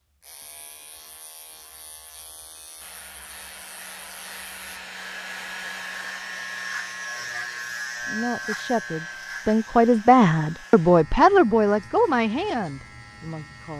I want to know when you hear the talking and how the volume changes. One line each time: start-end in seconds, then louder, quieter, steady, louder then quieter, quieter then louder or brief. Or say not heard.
8.0-13.7 louder then quieter.